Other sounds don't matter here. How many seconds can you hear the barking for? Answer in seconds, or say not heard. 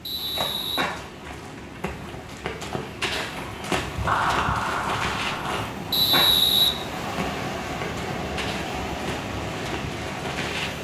not heard.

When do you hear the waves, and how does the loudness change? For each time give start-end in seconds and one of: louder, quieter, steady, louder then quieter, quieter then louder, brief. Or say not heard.
0.0-10.7 louder.